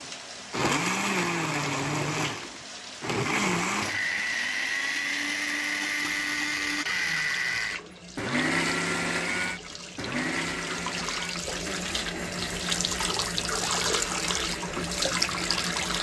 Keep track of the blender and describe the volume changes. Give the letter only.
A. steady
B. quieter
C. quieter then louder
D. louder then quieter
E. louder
B.